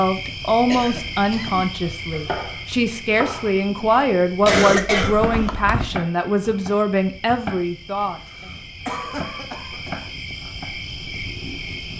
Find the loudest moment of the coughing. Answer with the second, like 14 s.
5 s.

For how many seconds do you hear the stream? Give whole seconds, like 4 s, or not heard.
not heard.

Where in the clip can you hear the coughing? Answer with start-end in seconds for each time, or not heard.
0.7-1.6, 4.4-5.9, 8.8-10.1.